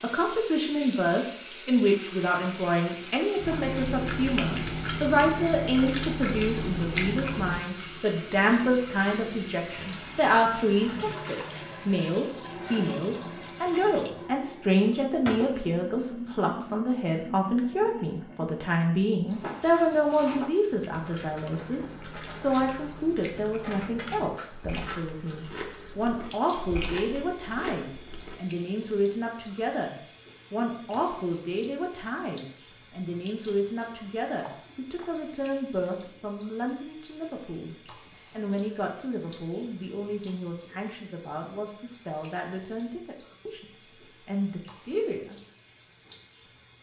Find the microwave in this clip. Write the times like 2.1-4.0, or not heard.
not heard.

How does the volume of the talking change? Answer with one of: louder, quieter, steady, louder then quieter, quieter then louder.
quieter.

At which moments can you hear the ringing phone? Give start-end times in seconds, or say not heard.
not heard.